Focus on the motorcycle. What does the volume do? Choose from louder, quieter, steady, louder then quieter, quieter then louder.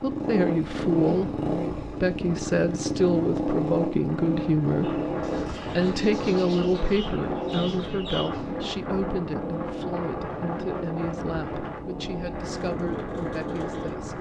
quieter.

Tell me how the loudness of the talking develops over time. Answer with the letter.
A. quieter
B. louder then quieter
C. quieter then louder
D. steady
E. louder
A.